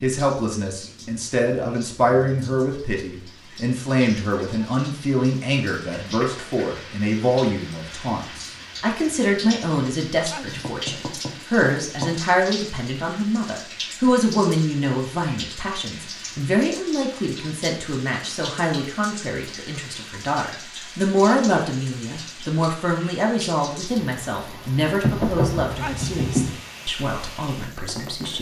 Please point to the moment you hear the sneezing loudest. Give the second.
26 s.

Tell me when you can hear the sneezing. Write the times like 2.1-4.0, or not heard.
10.2-10.7, 25.8-26.2.